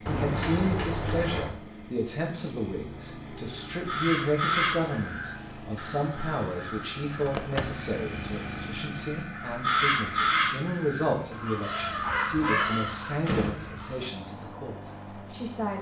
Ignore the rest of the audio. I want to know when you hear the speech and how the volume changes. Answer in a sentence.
You can hear the speech from 0.1 to 15.7 s, at a steady volume.